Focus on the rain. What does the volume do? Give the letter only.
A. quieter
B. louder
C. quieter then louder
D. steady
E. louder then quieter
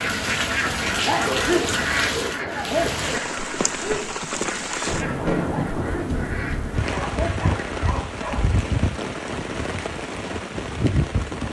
D.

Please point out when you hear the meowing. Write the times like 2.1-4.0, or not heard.
not heard.